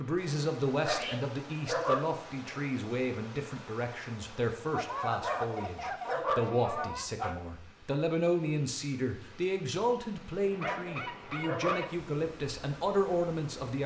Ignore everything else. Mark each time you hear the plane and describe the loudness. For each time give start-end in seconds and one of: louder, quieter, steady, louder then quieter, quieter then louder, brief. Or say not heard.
not heard.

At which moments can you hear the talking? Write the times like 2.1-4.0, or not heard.
0.0-13.8.